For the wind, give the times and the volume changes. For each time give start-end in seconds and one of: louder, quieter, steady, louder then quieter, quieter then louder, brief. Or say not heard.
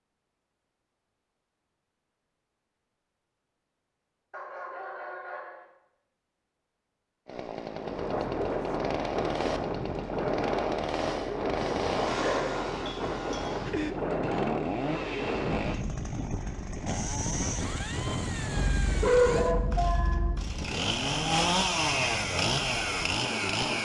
7.7-23.7 quieter.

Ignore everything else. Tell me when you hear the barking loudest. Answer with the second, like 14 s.
19 s.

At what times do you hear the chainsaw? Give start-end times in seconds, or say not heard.
7.2-23.7.